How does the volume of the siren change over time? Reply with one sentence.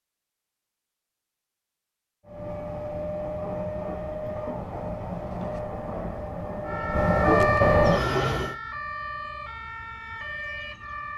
The loudness of the siren goes down.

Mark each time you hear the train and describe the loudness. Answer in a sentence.
You can hear the train from 2.2 to 8.6 s, getting louder.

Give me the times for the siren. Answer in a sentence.
You can hear the siren from 6.6 to 11.1 s.